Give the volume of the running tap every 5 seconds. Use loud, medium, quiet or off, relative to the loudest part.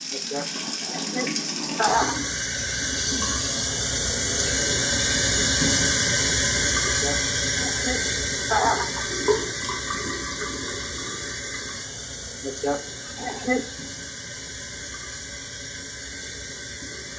loud, loud, medium, quiet.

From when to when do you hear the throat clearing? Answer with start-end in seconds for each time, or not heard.
0.1-2.2, 6.8-9.5, 12.4-13.7.